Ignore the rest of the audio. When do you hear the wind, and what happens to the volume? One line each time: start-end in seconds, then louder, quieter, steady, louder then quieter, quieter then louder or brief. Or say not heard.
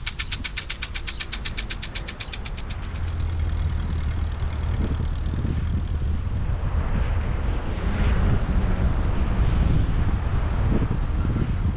0.0-11.7 louder.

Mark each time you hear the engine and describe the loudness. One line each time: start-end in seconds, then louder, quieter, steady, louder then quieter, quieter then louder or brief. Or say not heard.
0.0-11.7 quieter.